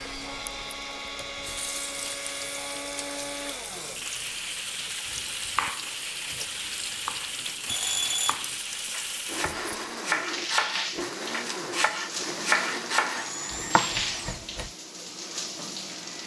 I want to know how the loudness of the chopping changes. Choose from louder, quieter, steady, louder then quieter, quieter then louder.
quieter then louder.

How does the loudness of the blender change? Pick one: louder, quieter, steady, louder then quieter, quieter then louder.
steady.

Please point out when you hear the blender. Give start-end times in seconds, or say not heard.
0.0-14.4.